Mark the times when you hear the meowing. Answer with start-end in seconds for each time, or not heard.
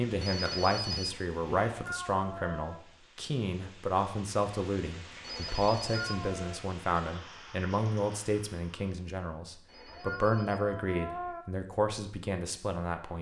1.7-2.8, 5.9-6.6, 9.8-11.4.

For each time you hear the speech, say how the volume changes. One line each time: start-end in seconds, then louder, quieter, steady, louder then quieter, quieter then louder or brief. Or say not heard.
0.0-13.1 steady.